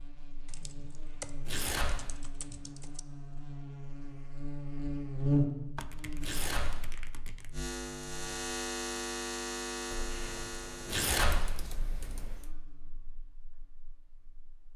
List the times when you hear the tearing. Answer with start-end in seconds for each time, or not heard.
1.4-2.0, 6.2-6.8, 10.8-11.5.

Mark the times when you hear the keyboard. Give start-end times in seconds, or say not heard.
0.5-3.0, 5.8-7.7, 9.9-12.5.